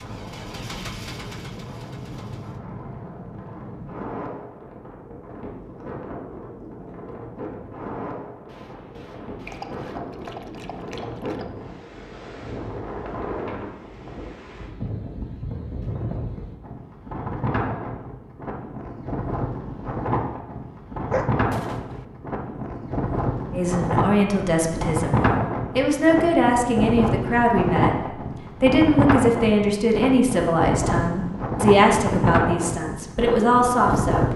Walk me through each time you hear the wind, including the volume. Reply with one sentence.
The wind can be heard from 0.0 to 34.3 s, getting louder.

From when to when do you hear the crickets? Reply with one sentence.
The crickets can't be heard in this clip.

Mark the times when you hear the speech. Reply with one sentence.
You can hear the speech from 23.5 to 34.3 s.